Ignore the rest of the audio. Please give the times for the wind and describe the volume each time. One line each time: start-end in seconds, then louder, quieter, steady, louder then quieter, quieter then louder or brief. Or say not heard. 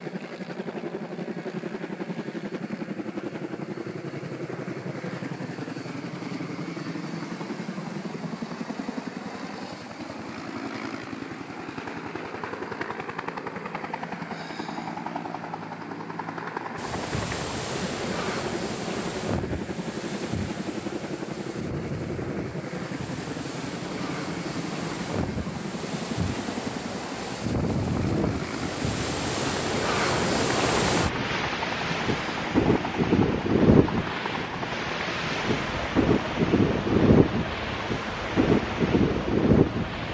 16.8-40.0 louder.